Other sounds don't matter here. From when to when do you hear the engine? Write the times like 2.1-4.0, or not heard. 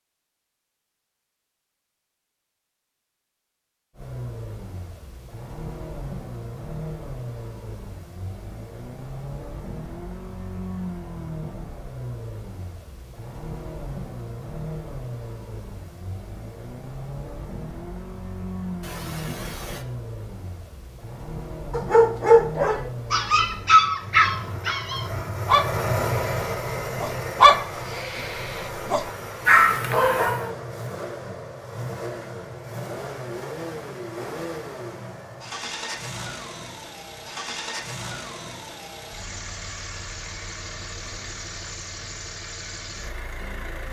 4.0-43.8.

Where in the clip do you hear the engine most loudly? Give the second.
26 s.